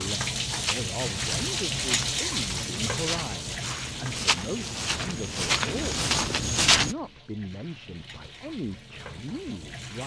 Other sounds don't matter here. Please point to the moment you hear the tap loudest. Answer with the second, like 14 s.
2 s.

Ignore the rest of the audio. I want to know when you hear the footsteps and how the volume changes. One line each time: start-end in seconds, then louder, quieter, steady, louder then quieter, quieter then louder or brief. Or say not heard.
0.5-7.0 louder.